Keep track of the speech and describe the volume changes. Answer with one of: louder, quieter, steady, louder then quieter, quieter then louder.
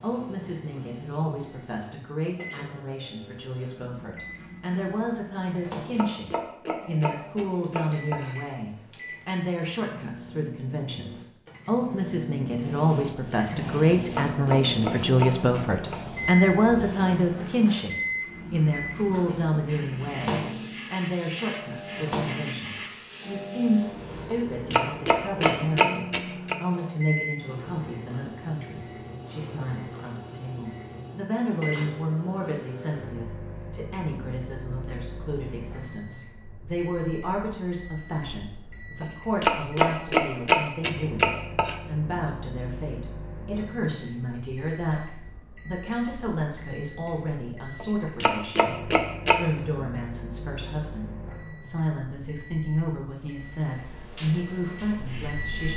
louder then quieter.